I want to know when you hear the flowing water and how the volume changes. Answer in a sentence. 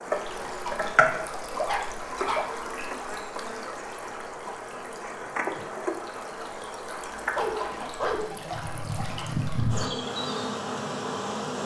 You can hear the flowing water from 0.0 to 11.6 s, getting quieter then louder.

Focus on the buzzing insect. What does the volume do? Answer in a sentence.
The loudness of the buzzing insect goes down, then up.